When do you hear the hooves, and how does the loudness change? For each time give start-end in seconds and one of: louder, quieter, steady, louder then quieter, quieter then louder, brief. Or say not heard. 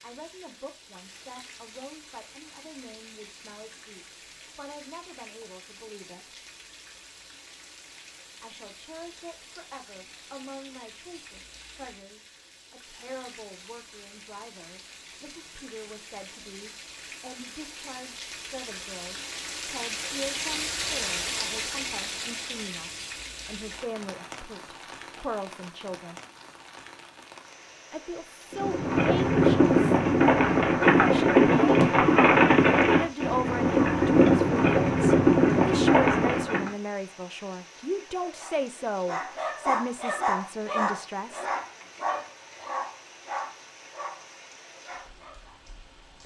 28.5-36.7 steady.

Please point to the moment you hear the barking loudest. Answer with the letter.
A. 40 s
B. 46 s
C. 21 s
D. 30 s
A.